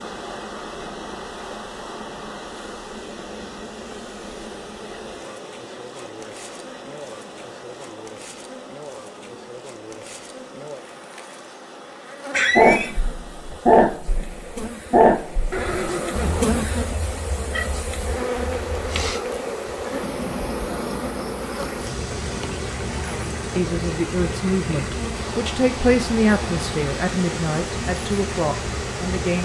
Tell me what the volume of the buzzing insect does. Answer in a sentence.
The volume of the buzzing insect goes up.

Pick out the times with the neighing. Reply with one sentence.
You can hear the neighing from 12.3 to 12.9 s and from 15.5 to 16.8 s.